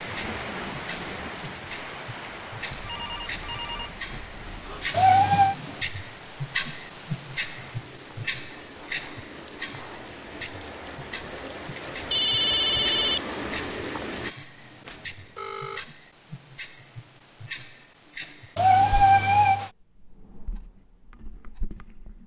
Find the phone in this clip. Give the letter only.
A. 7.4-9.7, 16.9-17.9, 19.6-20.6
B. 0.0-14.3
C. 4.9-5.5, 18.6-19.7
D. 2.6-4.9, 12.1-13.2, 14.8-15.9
D.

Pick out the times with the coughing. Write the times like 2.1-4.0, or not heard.
not heard.